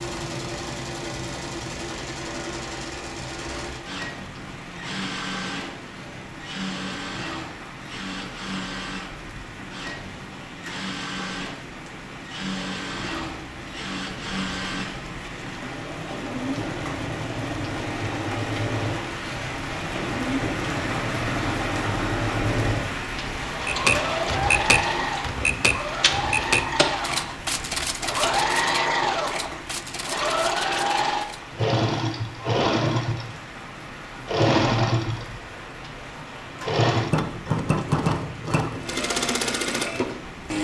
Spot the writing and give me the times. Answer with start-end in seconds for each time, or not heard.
not heard.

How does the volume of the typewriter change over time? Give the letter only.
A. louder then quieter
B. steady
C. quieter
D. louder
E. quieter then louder
C.